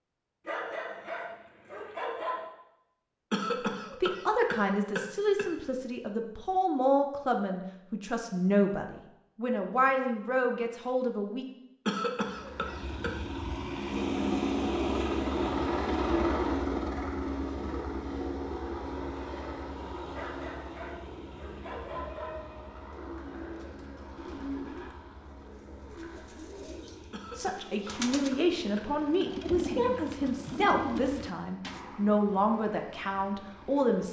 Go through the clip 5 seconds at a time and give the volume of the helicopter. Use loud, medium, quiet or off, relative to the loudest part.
off, off, loud, loud, quiet, quiet, quiet.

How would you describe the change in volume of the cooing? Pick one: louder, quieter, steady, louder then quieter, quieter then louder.
louder.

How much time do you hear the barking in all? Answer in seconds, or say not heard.
4 s.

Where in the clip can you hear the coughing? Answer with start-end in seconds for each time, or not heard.
3.3-5.5, 11.8-13.1, 27.1-29.2.